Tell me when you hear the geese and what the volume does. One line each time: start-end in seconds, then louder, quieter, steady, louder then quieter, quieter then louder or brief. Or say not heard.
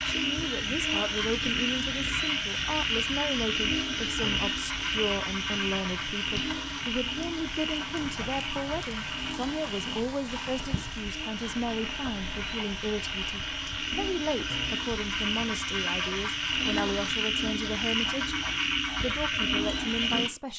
not heard.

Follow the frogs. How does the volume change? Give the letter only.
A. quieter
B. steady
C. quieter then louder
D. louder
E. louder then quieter
C.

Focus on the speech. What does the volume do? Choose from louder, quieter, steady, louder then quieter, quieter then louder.
steady.